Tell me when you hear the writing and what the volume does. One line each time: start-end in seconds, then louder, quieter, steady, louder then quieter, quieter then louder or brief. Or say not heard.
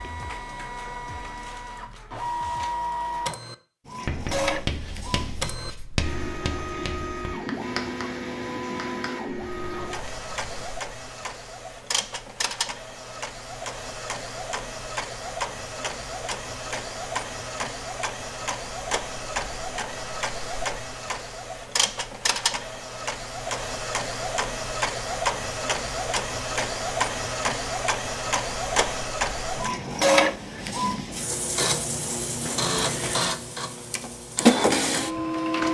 4.0-10.7 quieter.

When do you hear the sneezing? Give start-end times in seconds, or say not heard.
not heard.